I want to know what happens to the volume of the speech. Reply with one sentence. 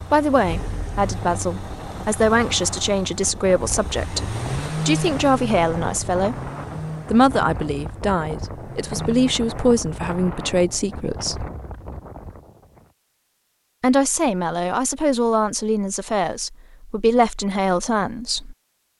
The volume of the speech stays about the same.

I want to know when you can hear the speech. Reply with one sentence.
You can hear the speech from 0.1 to 6.5 s, from 7.1 to 11.4 s and from 13.8 to 18.6 s.